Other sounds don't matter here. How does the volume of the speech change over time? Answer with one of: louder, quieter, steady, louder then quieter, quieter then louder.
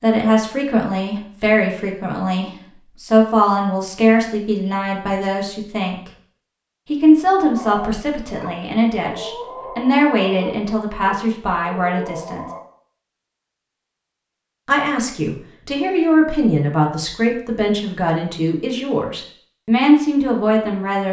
steady.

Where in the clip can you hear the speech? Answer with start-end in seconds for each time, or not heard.
0.0-6.1, 6.8-12.4, 14.7-21.0.